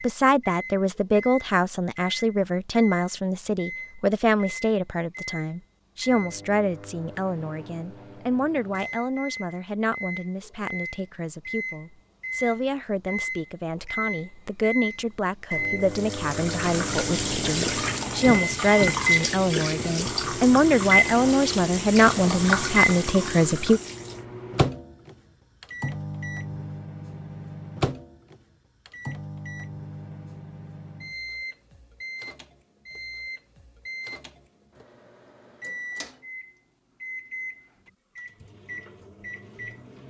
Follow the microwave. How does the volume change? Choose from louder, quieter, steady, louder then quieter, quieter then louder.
louder then quieter.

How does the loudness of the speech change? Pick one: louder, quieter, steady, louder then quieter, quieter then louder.
quieter then louder.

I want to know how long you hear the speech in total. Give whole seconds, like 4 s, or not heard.
24 s.